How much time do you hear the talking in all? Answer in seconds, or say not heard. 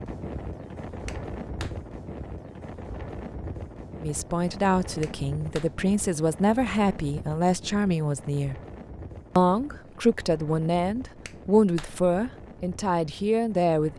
9 s.